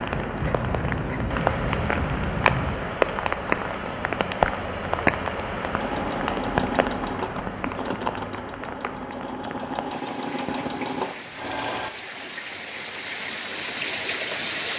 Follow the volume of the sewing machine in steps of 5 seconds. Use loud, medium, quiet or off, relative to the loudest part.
off, loud, loud.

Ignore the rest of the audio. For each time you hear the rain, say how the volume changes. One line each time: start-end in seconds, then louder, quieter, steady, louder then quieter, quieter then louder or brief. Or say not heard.
0.0-14.7 quieter then louder.